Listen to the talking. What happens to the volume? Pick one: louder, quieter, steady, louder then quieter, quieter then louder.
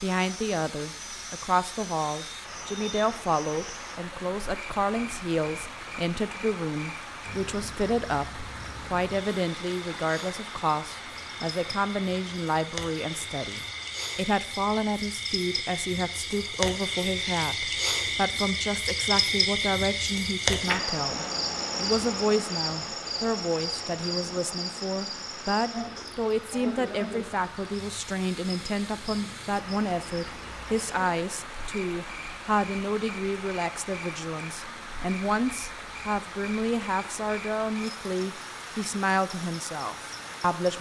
steady.